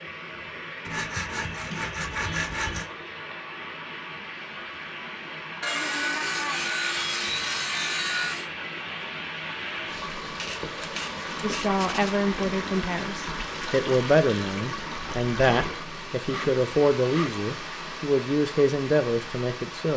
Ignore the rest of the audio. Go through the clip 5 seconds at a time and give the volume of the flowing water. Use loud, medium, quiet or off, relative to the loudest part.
medium, loud, loud, loud.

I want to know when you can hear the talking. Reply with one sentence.
You can hear the talking from 11.4 to 19.9 s.